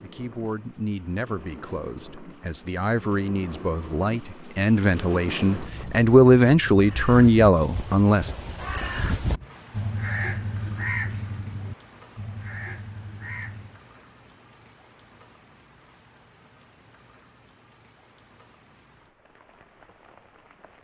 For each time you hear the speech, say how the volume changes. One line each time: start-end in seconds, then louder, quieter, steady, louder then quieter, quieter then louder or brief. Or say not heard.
0.0-8.3 louder.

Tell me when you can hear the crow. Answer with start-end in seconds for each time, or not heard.
6.8-13.8.